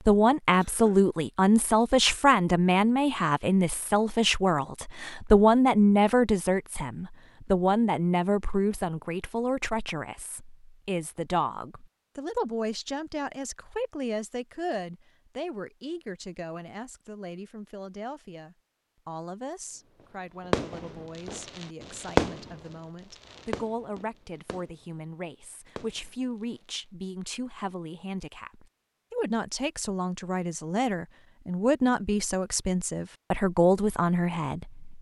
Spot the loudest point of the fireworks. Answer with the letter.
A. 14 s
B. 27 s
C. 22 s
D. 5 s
C.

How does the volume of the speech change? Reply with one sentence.
The volume of the speech goes down, then up.